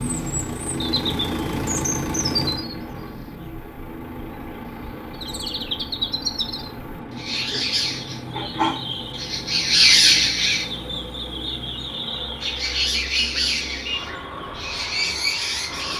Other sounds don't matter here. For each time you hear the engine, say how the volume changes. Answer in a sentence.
You can hear the engine from 0.0 to 15.9 s, getting quieter.